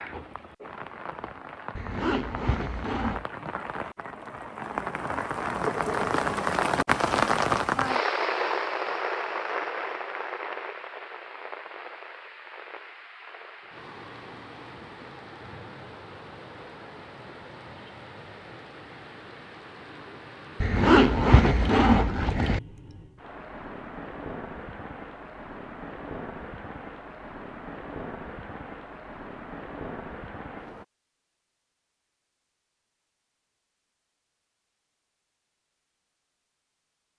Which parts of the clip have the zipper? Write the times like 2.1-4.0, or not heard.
1.8-3.2, 20.6-22.6.